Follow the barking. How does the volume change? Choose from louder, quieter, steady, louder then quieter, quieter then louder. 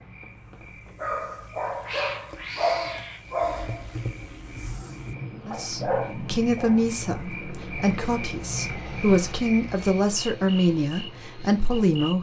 quieter then louder.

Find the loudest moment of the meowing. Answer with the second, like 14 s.
2 s.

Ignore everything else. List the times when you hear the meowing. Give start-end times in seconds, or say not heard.
1.2-3.2.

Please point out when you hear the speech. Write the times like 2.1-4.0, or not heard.
5.5-12.1.